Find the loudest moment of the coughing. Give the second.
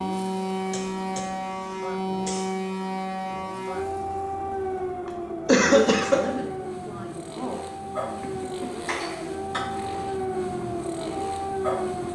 6 s.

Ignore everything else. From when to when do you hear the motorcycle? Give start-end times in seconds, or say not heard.
0.0-12.1.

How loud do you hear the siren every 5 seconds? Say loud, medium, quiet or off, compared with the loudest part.
loud, medium, loud.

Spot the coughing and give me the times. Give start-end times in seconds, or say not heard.
0.7-2.5, 5.0-6.2, 8.2-9.7.